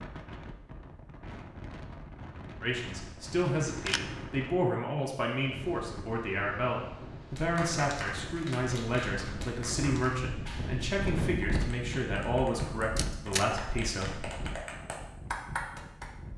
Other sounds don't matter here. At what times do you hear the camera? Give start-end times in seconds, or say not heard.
3.6-4.4, 12.9-13.5.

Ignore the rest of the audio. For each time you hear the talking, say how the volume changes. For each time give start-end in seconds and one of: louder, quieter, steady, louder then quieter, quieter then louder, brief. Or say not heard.
2.6-14.3 steady.